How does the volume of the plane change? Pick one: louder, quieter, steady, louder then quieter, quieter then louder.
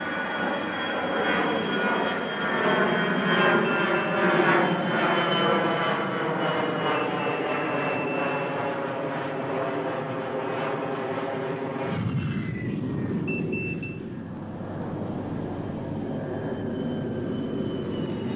quieter.